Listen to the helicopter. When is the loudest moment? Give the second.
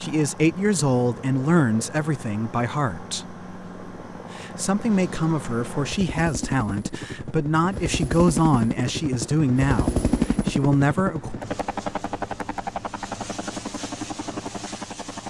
10 s.